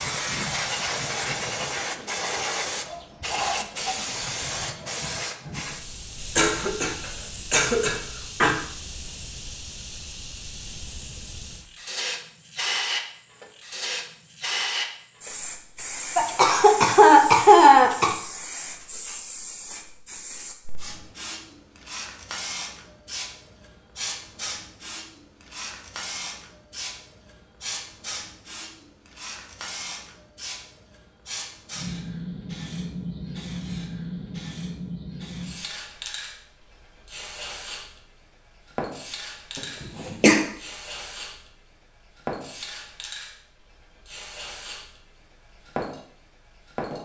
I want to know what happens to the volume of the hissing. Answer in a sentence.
The loudness of the hissing goes down.